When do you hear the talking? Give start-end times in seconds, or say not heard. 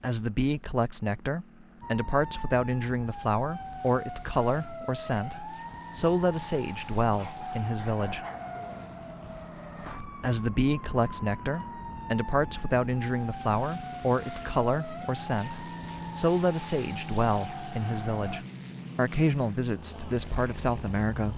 0.0-8.2, 10.2-21.3.